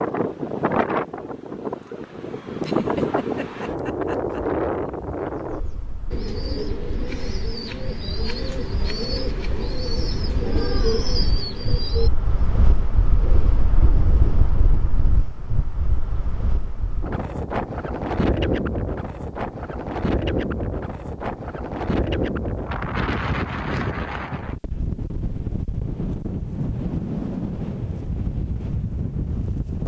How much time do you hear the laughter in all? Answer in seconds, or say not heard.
2 s.